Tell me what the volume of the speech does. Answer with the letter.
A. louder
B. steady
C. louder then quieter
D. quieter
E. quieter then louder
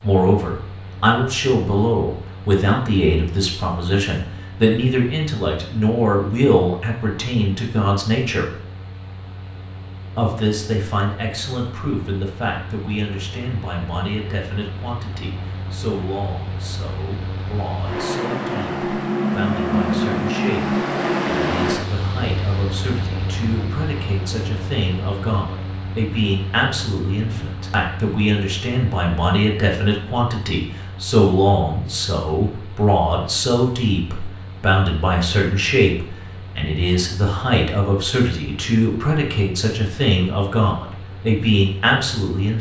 E.